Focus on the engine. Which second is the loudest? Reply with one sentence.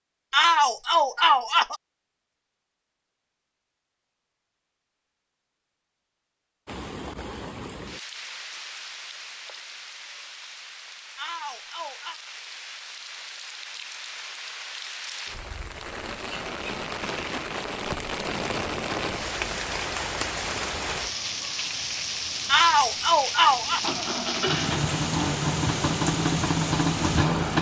The loudest moment of the engine is at 27 seconds.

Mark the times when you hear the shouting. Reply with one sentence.
You can hear the shouting from 0.3 to 1.8 s, from 11.2 to 12.2 s and from 22.4 to 23.8 s.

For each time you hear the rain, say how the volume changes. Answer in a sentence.
The rain can be heard from 6.7 to 27.5 s, getting louder.